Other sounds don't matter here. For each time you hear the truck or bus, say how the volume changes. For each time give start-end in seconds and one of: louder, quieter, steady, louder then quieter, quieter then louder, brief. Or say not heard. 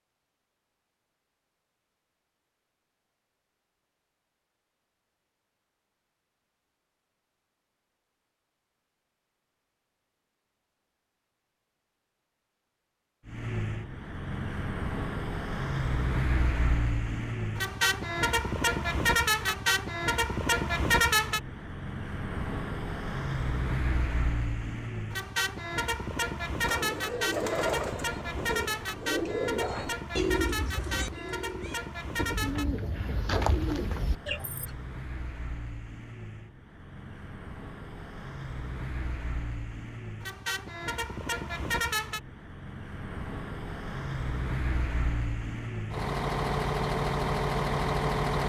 13.2-48.4 quieter then louder.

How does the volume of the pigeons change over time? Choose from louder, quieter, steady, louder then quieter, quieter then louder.
steady.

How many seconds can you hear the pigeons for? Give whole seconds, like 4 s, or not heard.
8 s.